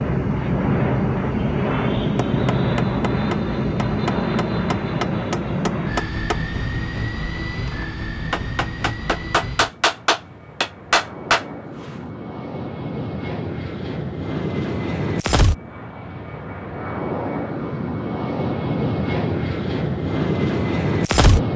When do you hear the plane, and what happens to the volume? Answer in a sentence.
The plane can be heard from 0.0 to 21.5 s, getting quieter then louder.